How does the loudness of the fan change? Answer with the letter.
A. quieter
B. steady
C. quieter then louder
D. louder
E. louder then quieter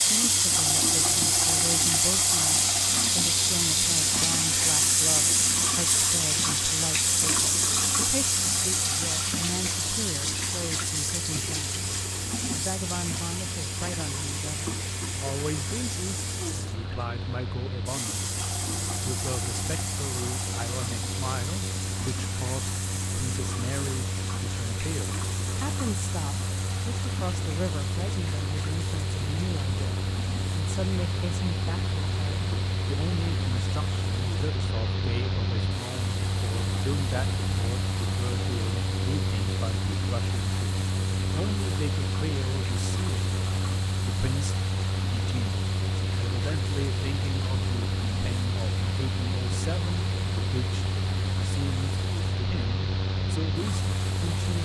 D.